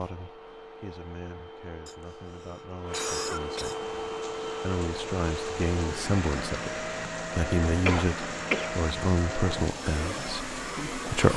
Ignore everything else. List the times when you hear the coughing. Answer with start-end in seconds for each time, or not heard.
1.9-3.8, 7.8-8.8.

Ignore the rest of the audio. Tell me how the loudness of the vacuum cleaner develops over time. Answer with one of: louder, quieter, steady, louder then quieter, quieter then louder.
louder.